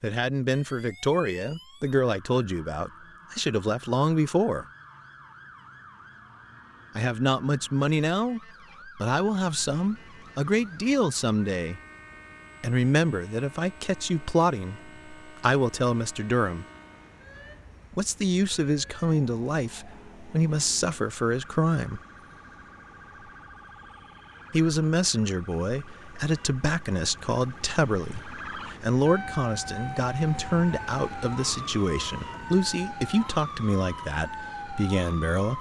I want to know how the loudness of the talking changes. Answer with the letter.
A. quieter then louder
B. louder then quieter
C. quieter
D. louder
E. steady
E.